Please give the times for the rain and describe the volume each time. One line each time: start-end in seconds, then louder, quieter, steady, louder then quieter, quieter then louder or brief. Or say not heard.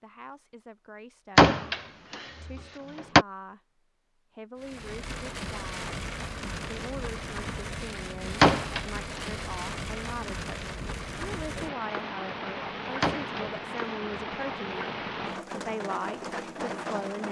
4.5-17.2 steady.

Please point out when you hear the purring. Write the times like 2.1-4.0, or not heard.
not heard.